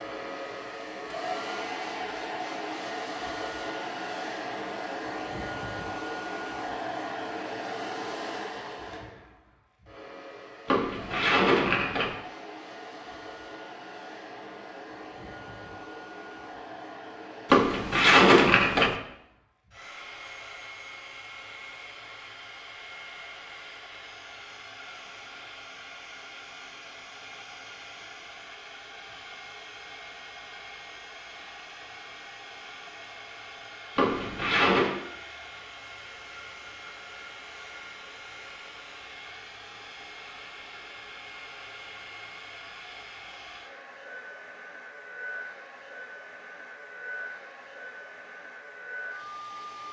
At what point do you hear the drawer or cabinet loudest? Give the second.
18 s.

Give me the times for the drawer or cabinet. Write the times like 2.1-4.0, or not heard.
10.7-12.2, 17.5-18.9, 34.0-35.0.